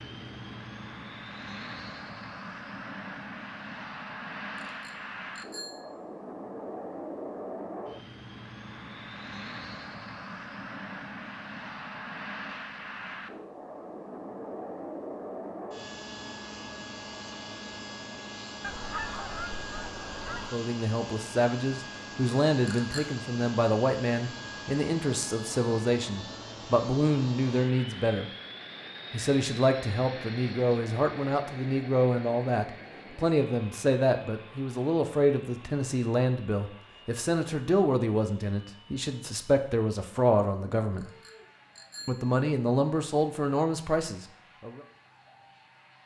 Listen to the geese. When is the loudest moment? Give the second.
19 s.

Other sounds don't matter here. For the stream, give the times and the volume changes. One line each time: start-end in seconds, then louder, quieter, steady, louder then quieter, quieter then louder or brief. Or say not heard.
not heard.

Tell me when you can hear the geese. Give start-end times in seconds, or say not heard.
18.6-20.6.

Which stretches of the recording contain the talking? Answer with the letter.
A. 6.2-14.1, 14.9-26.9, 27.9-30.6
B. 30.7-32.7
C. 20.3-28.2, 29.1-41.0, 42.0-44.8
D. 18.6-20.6
C.